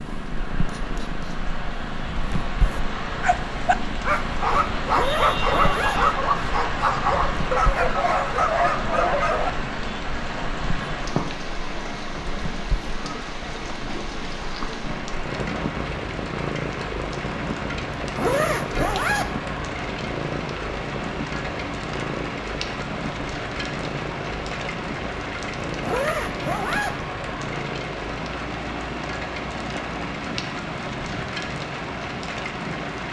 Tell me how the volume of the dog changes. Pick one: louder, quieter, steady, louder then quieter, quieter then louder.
steady.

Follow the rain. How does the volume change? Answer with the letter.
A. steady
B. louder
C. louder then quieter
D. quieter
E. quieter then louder
A.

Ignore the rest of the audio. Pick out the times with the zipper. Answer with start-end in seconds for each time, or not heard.
4.8-6.2, 18.0-19.4, 25.7-27.1.